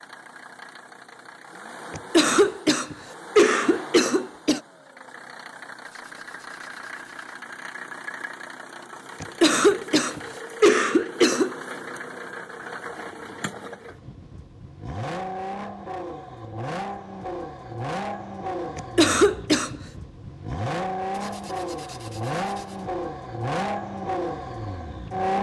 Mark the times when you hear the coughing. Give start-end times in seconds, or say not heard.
1.9-4.6, 9.2-11.6, 18.8-19.8.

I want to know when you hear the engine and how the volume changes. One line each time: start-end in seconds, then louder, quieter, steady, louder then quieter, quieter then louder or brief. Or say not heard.
0.0-25.3 louder.